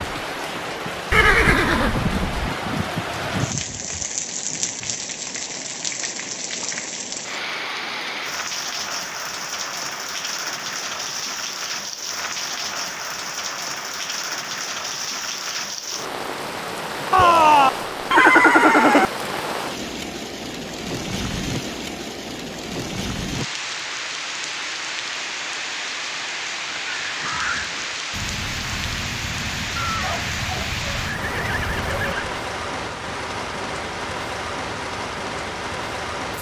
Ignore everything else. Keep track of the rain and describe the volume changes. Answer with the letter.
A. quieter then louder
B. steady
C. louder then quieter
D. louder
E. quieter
B.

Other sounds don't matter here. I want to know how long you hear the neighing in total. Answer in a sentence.
You can hear the neighing for 6 seconds altogether.